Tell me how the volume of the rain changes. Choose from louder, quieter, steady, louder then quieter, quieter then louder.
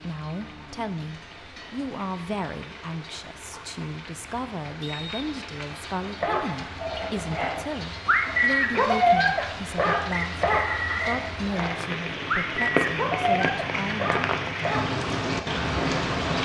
louder.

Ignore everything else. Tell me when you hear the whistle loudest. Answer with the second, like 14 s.
11 s.